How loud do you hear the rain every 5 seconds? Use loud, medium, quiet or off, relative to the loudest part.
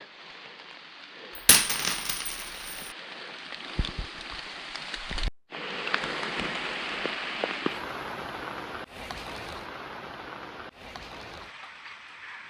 medium, loud, medium.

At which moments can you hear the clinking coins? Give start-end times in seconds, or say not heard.
1.4-2.9.